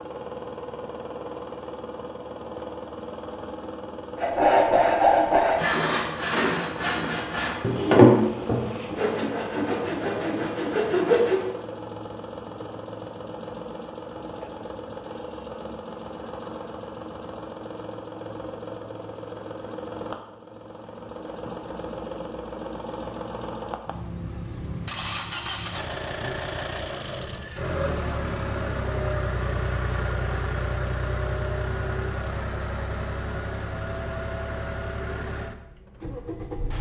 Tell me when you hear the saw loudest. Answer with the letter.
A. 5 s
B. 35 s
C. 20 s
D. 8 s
D.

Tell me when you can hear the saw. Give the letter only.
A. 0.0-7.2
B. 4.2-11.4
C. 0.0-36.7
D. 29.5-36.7
B.